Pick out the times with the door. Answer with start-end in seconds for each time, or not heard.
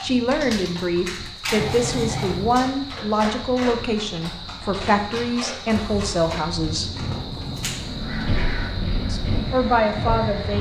1.6-2.6, 7.0-8.1.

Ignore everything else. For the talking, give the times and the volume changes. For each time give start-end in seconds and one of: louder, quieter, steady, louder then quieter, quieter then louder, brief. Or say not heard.
0.0-6.9 steady
9.1-10.5 brief.